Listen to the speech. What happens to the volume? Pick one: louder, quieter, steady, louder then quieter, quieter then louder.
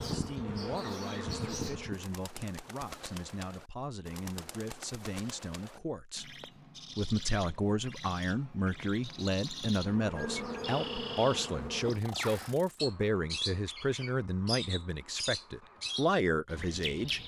louder.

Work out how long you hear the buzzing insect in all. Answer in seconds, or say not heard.
5 s.